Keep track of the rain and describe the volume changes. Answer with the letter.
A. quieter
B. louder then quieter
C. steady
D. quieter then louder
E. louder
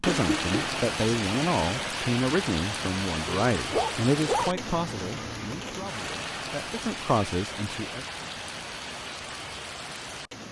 A.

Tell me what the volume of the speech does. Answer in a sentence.
The loudness of the speech goes down, then up.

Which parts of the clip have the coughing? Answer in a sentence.
The coughing can be heard from 0.1 to 0.8 s.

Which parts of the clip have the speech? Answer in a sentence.
The speech can be heard from 0.0 to 8.1 s.